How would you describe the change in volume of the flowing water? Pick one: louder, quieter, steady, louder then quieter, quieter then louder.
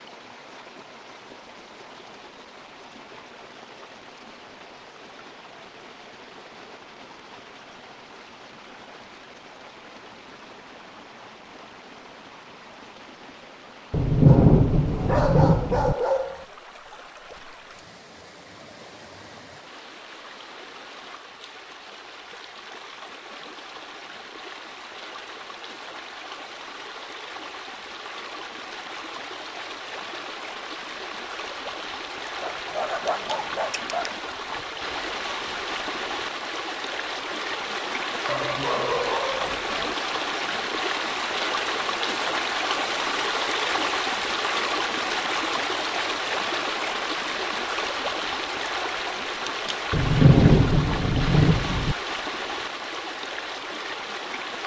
louder.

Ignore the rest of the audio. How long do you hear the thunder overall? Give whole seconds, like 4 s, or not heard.
4 s.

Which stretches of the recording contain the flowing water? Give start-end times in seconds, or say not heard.
0.0-54.6.